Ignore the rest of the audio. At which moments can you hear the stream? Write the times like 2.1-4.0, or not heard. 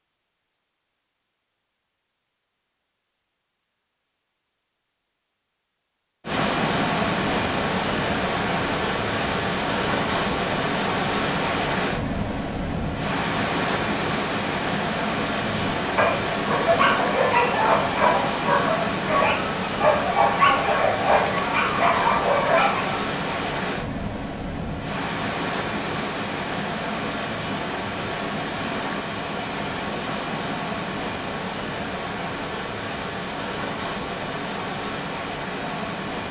6.2-36.2.